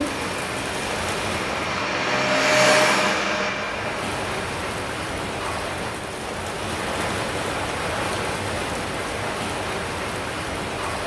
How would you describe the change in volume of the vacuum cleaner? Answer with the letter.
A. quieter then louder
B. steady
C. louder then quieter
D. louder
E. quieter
C.